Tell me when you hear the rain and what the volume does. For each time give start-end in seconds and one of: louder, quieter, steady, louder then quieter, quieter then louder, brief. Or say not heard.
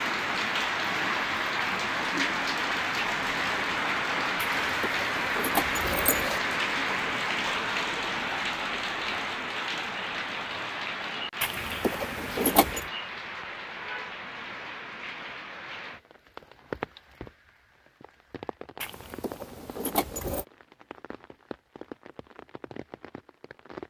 0.0-23.8 quieter.